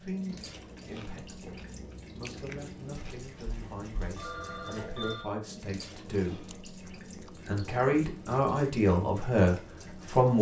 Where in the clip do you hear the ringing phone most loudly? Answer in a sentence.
The volume of the ringing phone peaks at 5 seconds.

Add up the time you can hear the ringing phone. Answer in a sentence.
The ringing phone can be heard for 2 seconds in total.